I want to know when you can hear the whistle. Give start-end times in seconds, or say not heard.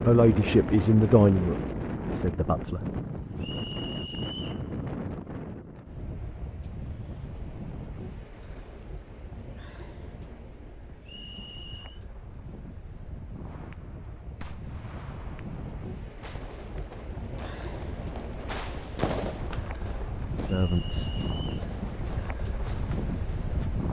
3.4-4.7, 11.0-12.0, 20.4-21.6.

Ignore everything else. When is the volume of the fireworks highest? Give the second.
19 s.